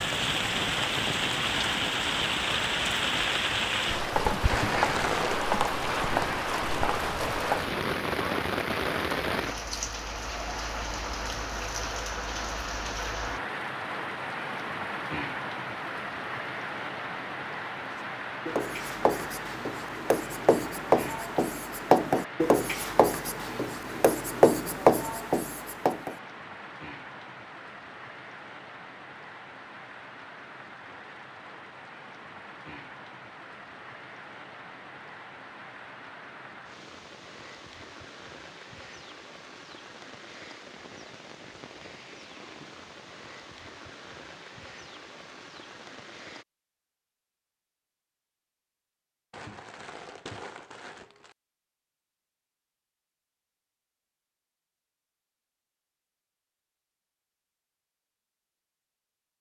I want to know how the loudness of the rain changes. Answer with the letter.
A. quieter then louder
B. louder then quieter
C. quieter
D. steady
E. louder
C.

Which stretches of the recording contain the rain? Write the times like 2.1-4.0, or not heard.
0.0-46.5.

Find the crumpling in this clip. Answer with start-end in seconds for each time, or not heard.
4.5-5.4, 49.3-51.4.